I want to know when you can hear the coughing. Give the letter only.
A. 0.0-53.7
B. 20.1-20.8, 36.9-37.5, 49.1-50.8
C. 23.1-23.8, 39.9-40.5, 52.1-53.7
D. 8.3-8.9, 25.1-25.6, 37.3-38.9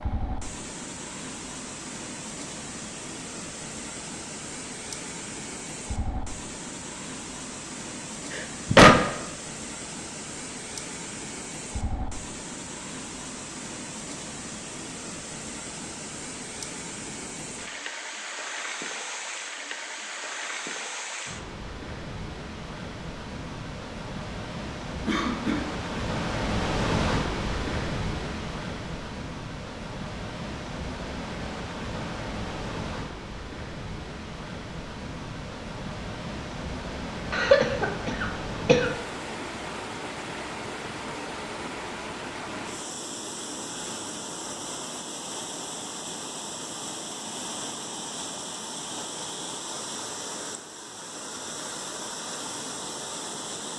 D.